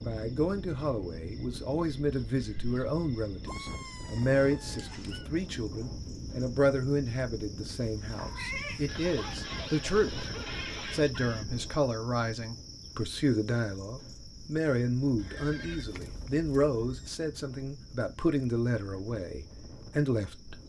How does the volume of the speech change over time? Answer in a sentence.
The volume of the speech stays about the same.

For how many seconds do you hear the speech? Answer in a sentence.
You can hear the speech for 20 seconds altogether.